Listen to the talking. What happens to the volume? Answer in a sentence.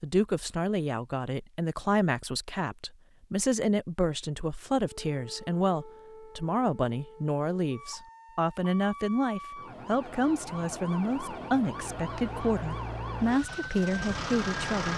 The volume of the talking stays about the same.